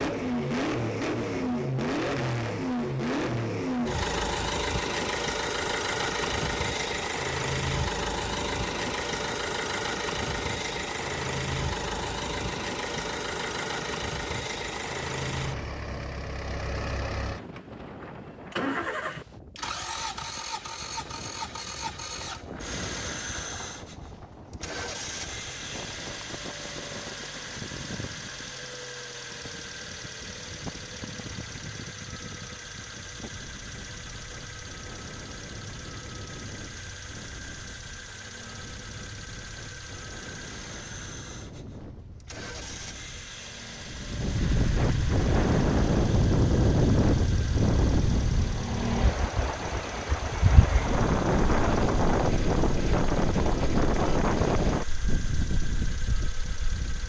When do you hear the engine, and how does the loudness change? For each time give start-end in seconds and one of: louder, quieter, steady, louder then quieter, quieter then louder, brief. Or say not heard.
0.0-57.0 quieter.